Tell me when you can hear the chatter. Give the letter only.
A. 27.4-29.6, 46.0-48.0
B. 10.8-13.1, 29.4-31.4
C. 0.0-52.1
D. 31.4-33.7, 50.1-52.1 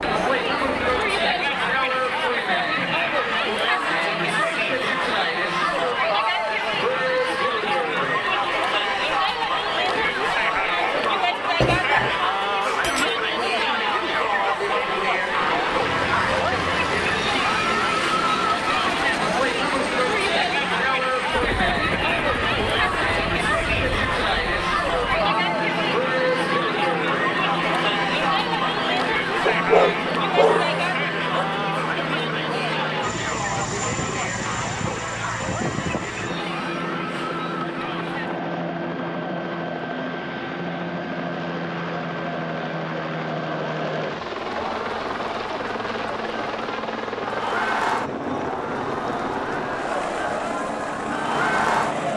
C.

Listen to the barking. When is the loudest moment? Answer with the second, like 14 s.
30 s.